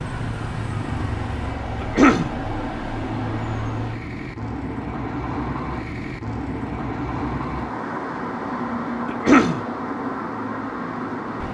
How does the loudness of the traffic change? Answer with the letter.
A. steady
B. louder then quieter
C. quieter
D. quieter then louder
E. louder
A.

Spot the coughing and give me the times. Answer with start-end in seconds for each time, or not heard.
1.8-2.4, 9.1-9.6.